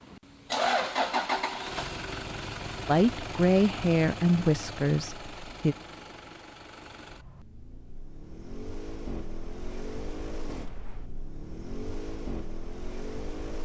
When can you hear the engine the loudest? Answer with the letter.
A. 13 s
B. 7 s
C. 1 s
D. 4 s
C.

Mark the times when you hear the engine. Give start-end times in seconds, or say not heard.
0.0-13.6.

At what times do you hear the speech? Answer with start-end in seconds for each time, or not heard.
2.9-5.8.